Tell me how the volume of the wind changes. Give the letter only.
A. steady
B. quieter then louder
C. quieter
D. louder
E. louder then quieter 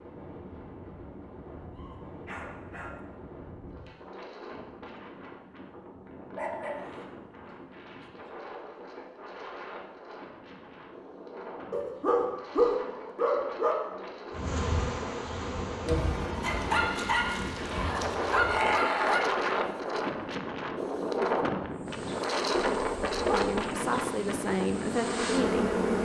D.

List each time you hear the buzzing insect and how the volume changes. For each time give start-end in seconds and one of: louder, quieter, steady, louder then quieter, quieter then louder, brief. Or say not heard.
14.3-18.9 quieter
21.8-26.0 louder.